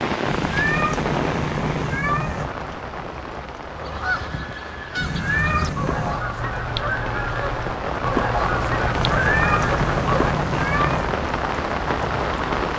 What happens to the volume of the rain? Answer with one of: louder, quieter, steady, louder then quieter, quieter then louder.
quieter then louder.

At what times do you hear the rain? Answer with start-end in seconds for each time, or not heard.
0.0-12.7.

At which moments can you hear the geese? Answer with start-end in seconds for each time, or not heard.
3.6-10.4.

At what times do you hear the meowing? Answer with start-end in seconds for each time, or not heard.
0.2-2.5, 5.0-6.2, 8.9-11.2.